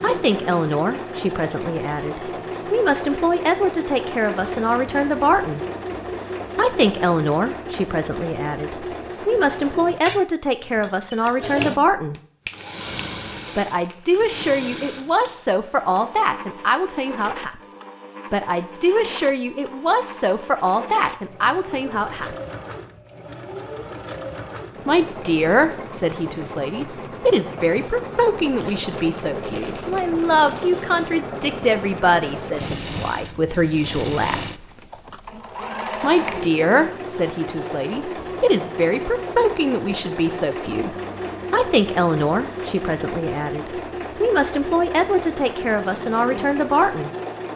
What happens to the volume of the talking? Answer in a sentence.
The loudness of the talking stays about the same.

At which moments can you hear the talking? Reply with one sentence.
You can hear the talking from 0.0 to 5.7 s, from 6.5 to 12.2 s, from 13.6 to 17.6 s, from 18.3 to 22.4 s, from 24.9 to 34.5 s and from 36.0 to 47.1 s.